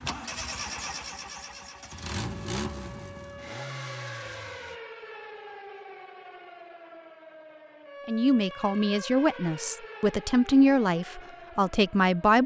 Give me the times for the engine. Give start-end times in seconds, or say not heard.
0.0-4.8.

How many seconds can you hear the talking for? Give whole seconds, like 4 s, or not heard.
4 s.